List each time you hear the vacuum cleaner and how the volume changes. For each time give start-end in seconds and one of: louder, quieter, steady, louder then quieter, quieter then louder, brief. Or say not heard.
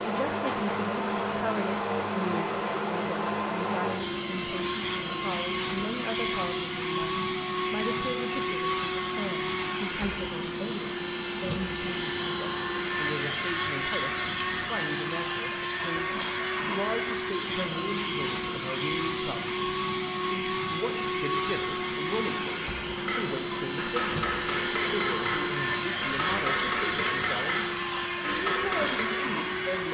0.0-29.8 steady.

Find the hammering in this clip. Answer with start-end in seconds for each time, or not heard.
22.9-29.1.